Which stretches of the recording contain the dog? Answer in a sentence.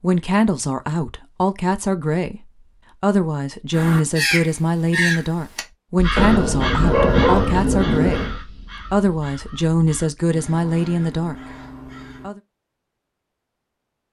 The dog can be heard from 6.2 to 8.3 s.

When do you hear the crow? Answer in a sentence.
You can hear the crow from 3.7 to 12.3 s.